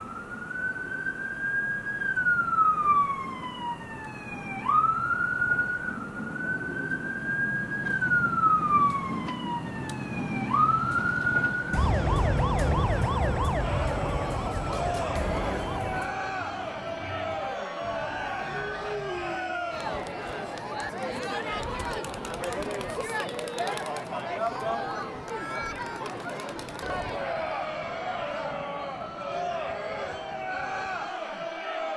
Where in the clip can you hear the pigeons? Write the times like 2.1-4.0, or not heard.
not heard.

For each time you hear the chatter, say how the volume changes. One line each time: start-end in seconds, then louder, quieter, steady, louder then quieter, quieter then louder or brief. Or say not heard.
13.6-31.9 steady.